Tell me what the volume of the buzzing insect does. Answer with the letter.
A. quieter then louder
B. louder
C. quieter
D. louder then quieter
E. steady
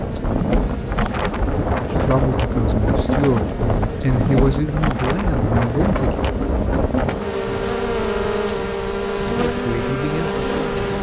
B.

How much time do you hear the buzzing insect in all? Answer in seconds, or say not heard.
11 s.